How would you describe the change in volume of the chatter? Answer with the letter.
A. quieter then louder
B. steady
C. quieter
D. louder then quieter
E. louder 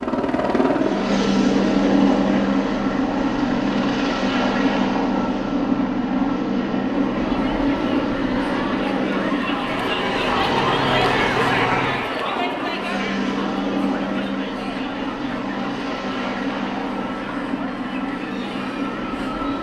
D.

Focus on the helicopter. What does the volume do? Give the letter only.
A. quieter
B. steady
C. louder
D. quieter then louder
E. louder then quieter
A.